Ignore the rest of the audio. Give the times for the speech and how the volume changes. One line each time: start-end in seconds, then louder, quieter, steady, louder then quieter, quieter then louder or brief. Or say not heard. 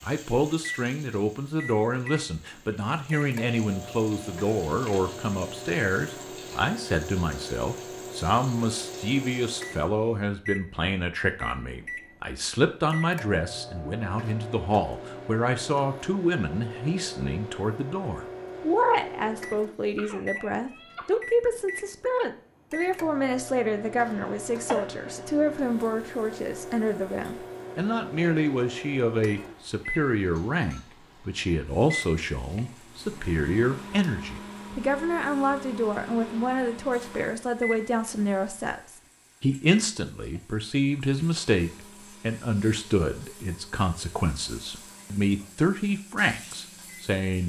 0.0-47.4 steady.